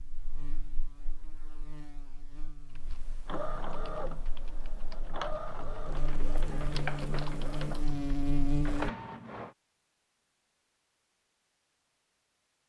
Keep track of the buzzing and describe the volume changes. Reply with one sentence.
The volume of the buzzing goes down, then up.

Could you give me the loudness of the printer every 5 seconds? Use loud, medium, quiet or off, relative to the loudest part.
loud, loud, off.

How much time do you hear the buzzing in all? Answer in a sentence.
The buzzing can be heard for 9 seconds in total.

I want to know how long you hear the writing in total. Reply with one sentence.
You can't hear the writing here.